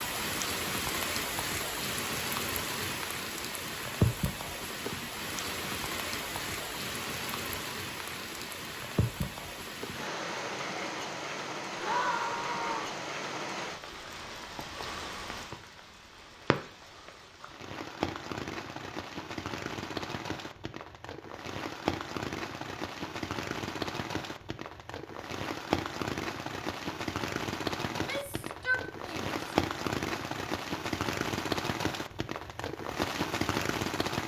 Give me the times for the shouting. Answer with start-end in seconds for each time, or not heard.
11.8-12.9, 27.9-29.3.